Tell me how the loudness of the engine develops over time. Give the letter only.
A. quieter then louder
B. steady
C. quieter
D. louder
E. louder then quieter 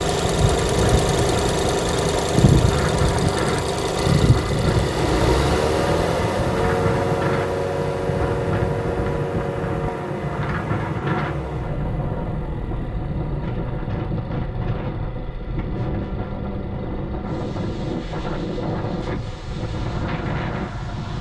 C.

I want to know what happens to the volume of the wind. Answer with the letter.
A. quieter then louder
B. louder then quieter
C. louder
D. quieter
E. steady
E.